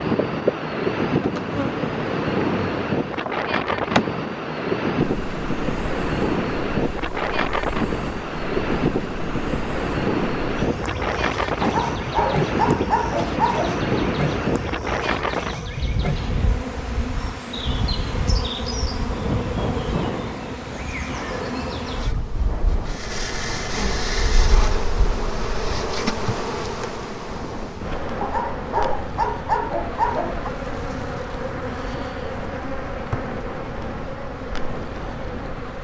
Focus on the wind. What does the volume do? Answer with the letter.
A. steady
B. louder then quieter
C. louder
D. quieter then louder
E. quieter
E.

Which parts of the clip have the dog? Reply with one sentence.
You can hear the dog from 11.6 to 13.8 s and from 28.2 to 30.5 s.